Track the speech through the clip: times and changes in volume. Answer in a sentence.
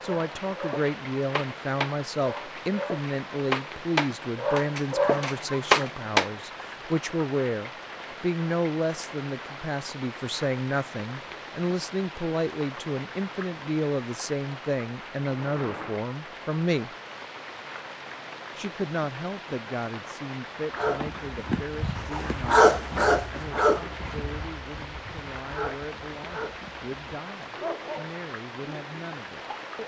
The speech can be heard from 0.0 to 16.9 s, at a steady volume; and from 18.6 to 29.8 s, getting quieter.